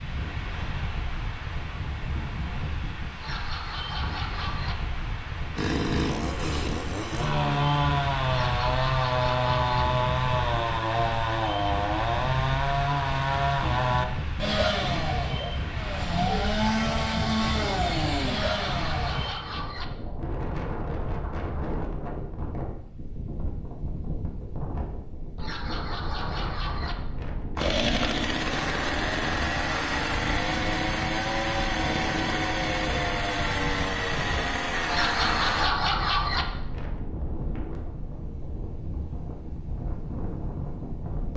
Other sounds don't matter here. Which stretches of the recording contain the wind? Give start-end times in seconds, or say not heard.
0.0-41.3.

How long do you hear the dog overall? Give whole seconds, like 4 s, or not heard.
8 s.